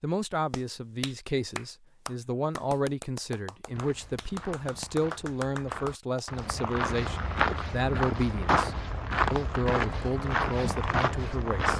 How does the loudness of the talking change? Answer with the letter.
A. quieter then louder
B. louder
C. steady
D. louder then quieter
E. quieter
C.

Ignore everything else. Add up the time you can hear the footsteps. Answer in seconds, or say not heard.
8 s.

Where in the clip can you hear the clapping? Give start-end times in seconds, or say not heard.
0.5-6.5.